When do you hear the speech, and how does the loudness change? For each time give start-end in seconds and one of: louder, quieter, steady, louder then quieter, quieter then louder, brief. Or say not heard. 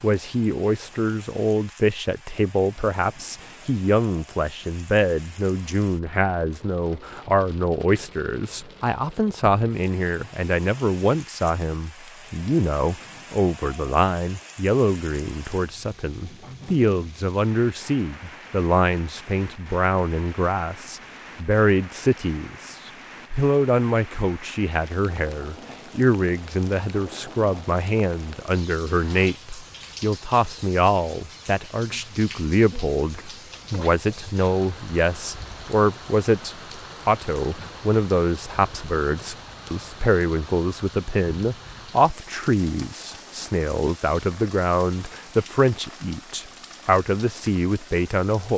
0.0-48.5 steady.